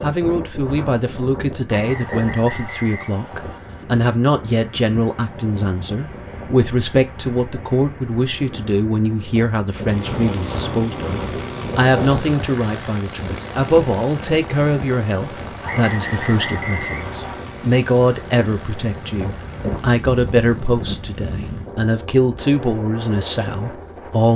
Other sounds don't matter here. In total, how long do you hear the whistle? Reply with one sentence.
You can hear the whistle for 4 seconds altogether.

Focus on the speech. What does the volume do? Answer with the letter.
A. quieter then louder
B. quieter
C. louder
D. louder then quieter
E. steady
E.